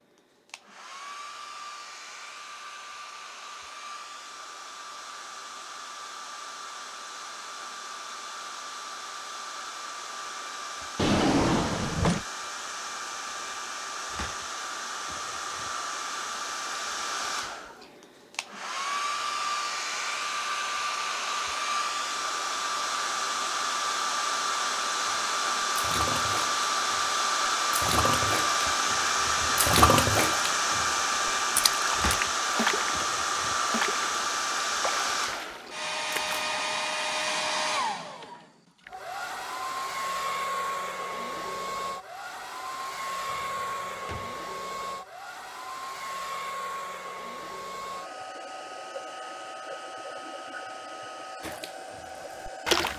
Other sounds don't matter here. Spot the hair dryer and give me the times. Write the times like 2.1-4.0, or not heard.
0.0-52.9.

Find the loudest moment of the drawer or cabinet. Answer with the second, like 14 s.
11 s.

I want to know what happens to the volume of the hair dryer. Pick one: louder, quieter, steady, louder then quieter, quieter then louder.
louder then quieter.